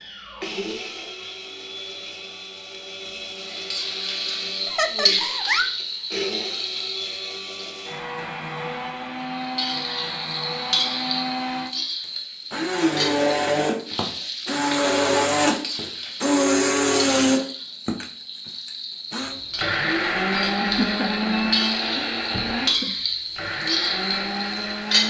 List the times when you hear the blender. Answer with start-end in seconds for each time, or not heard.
0.0-25.0.